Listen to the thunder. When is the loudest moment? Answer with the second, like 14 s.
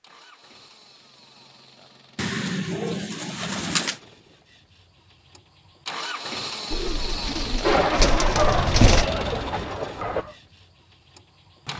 8 s.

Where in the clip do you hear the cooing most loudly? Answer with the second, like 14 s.
9 s.